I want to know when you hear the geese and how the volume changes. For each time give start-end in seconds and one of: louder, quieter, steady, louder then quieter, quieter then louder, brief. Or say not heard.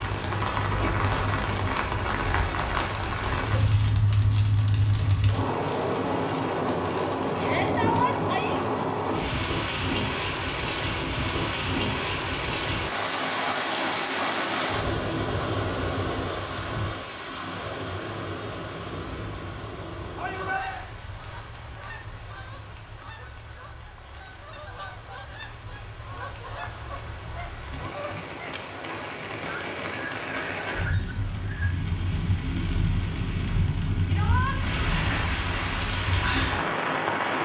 20.3-31.7 louder.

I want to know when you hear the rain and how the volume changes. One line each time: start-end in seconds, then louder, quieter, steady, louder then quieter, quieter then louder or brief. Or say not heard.
0.0-37.3 quieter then louder.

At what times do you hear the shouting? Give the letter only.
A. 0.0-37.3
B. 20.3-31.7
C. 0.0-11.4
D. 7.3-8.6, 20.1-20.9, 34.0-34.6
D.